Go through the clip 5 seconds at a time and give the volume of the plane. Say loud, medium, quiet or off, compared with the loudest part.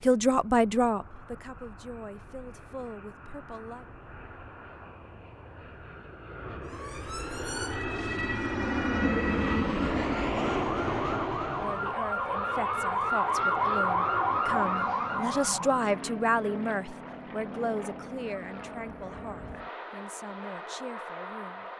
quiet, loud, loud, medium, medium.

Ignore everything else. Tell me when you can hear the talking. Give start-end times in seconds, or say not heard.
0.0-3.9, 11.6-21.7.